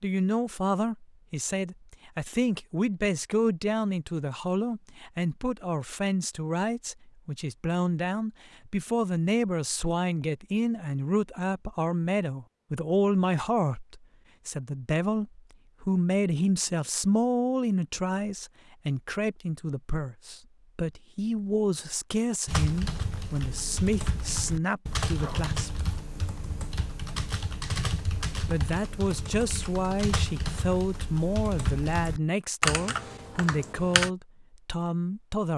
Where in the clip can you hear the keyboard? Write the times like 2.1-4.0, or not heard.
22.4-34.1.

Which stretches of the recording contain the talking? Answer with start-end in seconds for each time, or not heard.
0.0-25.9, 28.4-35.5.